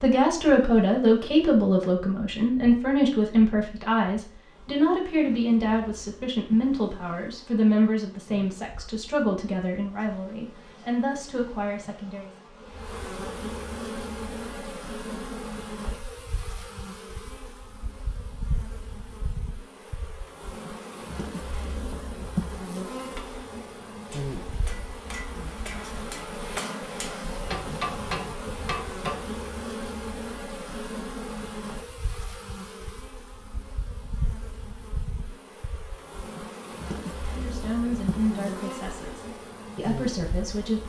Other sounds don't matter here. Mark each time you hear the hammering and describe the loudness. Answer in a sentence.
You can hear the hammering from 22.9 to 29.2 s, getting louder.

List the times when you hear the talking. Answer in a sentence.
You can hear the talking from 0.0 to 12.3 s and from 37.2 to 40.8 s.